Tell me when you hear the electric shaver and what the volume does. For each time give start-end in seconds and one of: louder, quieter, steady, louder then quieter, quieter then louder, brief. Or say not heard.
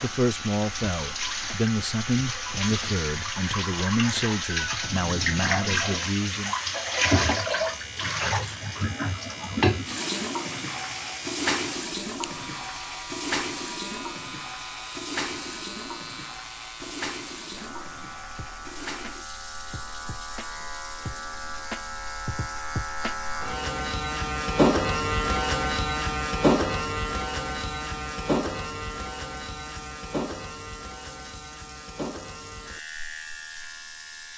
0.0-34.3 louder then quieter.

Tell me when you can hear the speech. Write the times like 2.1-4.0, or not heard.
0.0-6.5.